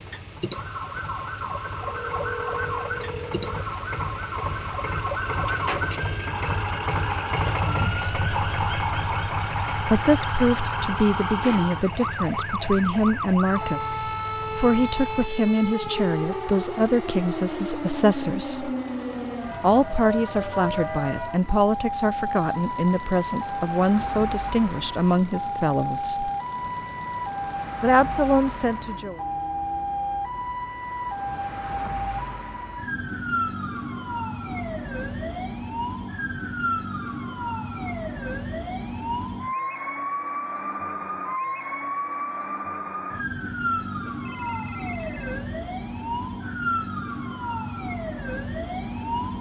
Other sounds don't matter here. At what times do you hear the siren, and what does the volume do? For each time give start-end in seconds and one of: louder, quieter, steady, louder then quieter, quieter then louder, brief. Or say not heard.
0.0-49.3 steady.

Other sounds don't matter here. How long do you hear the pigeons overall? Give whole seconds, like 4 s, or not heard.
not heard.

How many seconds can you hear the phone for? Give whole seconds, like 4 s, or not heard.
3 s.